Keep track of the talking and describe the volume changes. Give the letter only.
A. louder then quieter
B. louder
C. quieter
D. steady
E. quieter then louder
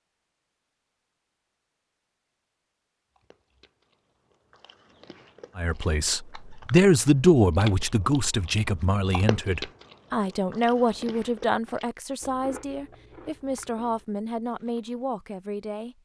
C.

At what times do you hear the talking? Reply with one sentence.
The talking can be heard from 5.5 to 15.9 s.